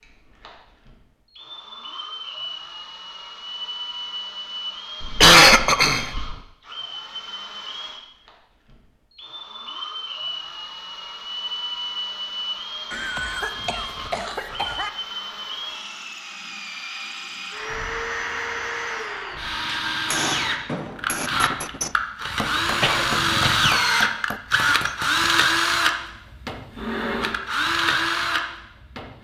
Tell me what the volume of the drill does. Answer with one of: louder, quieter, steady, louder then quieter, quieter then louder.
louder.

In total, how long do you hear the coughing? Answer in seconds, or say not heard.
4 s.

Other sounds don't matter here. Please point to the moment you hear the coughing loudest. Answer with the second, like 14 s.
5 s.